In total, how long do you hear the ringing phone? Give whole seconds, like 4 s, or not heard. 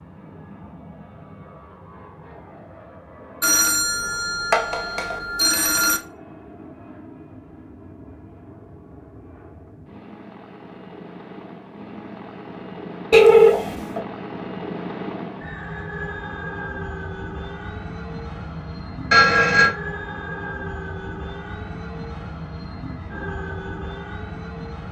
4 s.